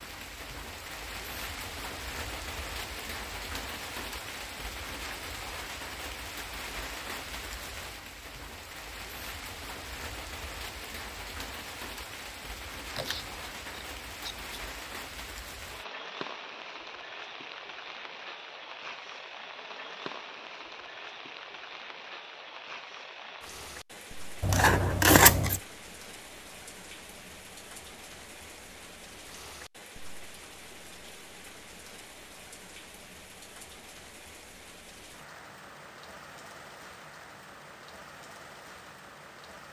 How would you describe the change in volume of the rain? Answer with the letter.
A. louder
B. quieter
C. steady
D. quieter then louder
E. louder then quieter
B.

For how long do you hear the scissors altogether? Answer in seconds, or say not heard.
3 s.